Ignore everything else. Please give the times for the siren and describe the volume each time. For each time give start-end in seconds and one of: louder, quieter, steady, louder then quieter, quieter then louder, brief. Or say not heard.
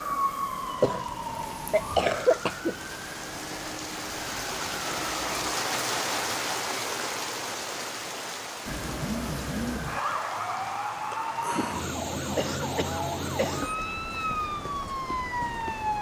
0.0-5.6 quieter
8.7-15.9 steady.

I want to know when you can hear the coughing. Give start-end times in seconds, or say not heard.
0.8-2.8, 12.3-13.8.